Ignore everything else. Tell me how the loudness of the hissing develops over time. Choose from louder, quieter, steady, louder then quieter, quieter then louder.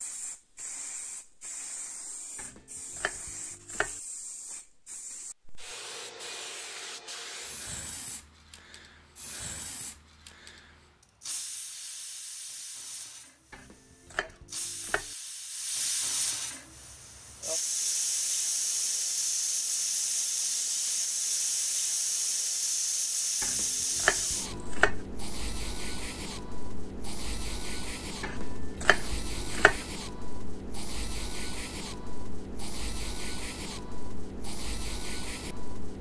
louder then quieter.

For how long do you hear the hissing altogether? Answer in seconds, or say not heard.
36 s.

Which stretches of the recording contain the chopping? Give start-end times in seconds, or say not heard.
2.4-4.0, 13.5-15.1, 23.4-25.0, 28.2-29.8.